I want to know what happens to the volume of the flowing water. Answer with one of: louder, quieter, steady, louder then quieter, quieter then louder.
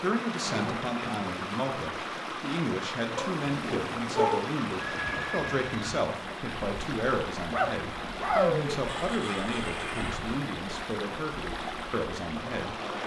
steady.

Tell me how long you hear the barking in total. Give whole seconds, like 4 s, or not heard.
3 s.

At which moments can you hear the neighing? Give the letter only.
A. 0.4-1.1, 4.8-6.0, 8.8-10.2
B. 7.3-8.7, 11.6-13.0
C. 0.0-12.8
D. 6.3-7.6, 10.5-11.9
A.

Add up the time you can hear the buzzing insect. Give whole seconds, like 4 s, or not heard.
not heard.